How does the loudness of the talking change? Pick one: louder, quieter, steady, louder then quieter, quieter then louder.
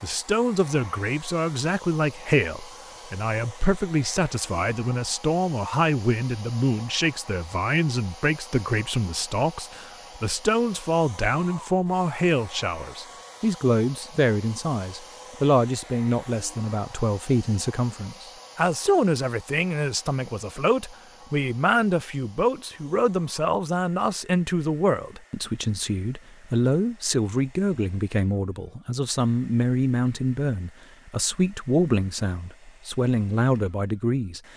steady.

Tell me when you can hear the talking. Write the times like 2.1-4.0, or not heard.
0.0-34.4.